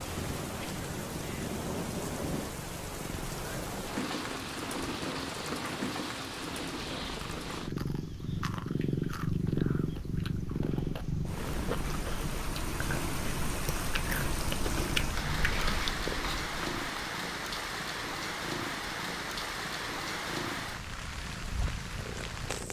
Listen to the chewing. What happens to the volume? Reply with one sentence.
The volume of the chewing goes up.